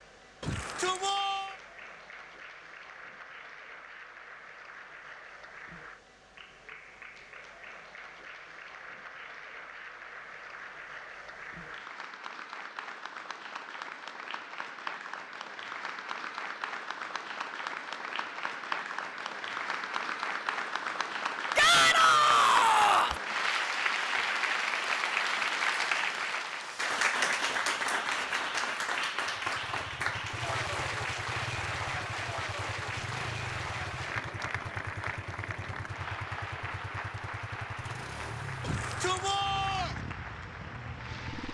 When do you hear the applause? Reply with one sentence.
You can hear the applause from 0.0 to 41.5 s.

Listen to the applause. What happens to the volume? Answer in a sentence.
The volume of the applause goes up, then down.